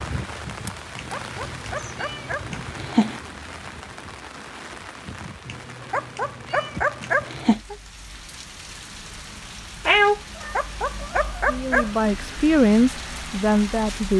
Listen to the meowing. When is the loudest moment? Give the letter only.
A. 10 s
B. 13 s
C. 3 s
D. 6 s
A.